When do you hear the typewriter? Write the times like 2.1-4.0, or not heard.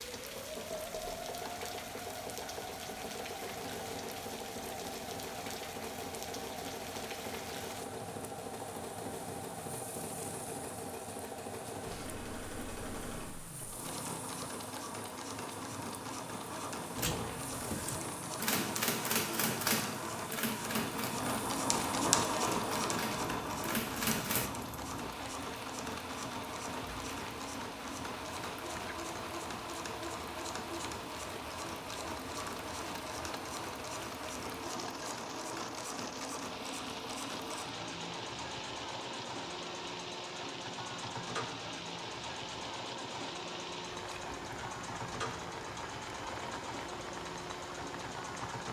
16.9-24.5.